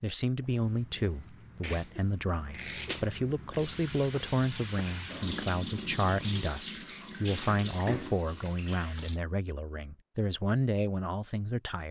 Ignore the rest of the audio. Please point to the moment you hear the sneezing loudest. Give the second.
3 s.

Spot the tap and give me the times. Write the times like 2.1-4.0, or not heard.
3.5-9.2.